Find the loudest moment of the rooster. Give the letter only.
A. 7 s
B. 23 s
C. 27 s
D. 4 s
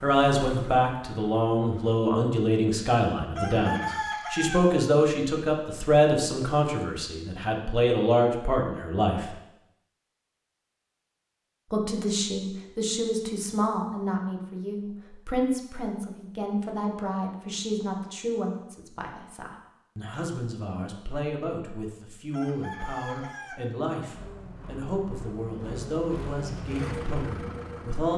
D.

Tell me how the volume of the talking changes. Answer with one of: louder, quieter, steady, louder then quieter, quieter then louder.
quieter.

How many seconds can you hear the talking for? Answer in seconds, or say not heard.
26 s.